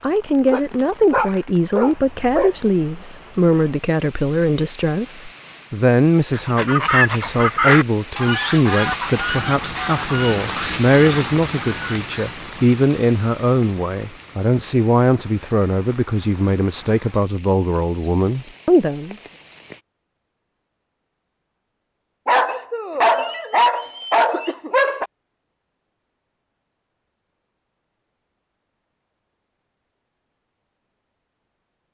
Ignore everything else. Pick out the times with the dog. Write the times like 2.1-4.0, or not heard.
0.5-2.5, 22.2-25.1.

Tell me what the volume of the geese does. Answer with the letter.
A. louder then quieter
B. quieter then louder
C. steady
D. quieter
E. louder
D.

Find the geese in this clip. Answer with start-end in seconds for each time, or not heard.
6.3-12.2.